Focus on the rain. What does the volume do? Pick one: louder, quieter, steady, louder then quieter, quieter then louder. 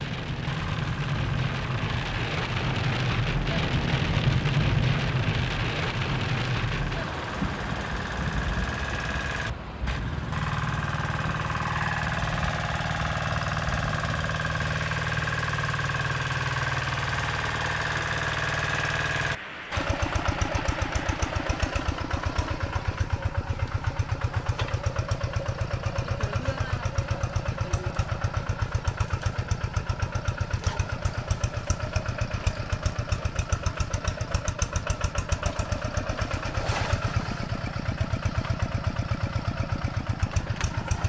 quieter.